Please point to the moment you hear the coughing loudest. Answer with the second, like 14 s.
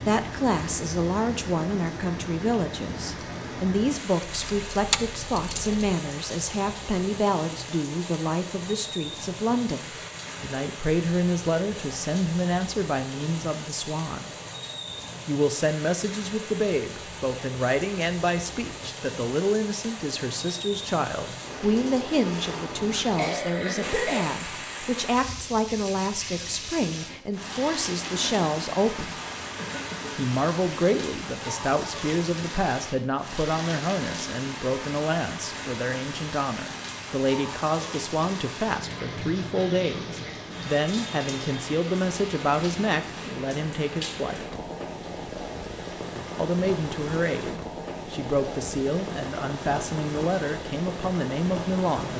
24 s.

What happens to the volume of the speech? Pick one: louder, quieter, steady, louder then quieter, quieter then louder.
steady.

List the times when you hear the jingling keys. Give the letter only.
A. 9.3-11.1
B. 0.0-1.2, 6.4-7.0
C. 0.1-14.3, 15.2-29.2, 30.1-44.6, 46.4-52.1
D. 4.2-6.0
D.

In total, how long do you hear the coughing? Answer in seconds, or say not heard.
2 s.